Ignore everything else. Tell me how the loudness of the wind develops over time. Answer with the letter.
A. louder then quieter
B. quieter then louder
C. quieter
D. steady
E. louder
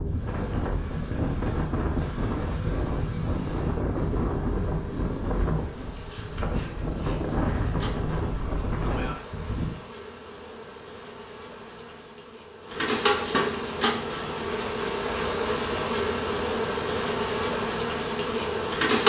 D.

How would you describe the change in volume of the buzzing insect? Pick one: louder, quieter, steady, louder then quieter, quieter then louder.
louder.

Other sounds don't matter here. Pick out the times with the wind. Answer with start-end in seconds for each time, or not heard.
0.0-9.7.